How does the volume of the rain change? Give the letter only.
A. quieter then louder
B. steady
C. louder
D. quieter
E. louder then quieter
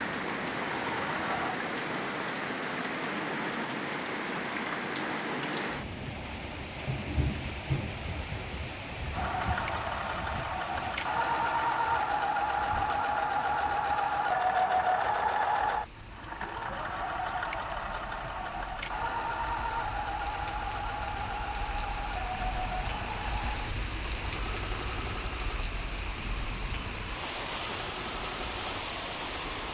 A.